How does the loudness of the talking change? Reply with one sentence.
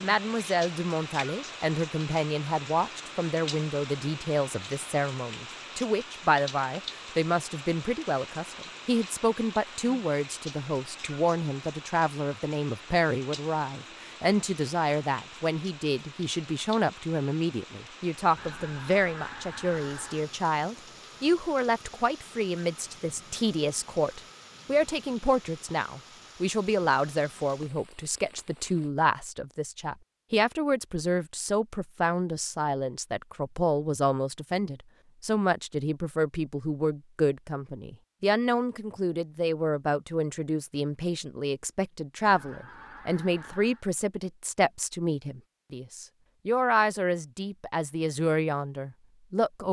The loudness of the talking stays about the same.